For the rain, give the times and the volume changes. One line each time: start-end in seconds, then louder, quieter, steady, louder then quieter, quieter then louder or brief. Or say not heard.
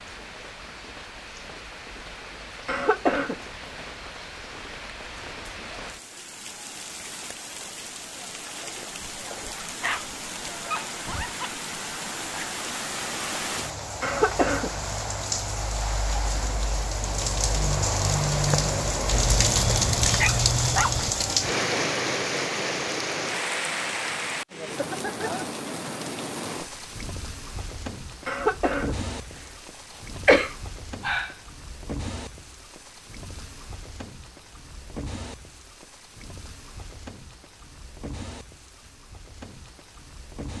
0.0-40.5 louder then quieter.